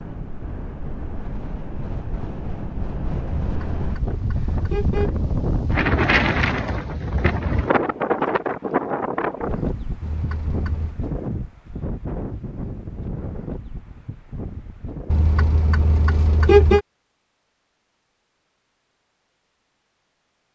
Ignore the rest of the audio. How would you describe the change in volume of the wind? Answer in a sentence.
The volume of the wind goes up, then down.